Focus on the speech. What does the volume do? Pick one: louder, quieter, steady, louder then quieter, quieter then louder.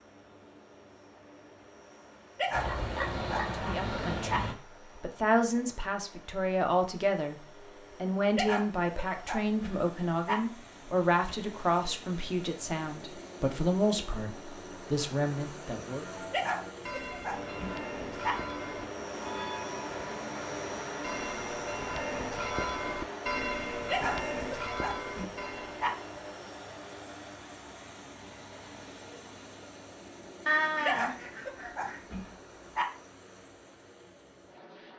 steady.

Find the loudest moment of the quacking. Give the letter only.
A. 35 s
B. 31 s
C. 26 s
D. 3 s
B.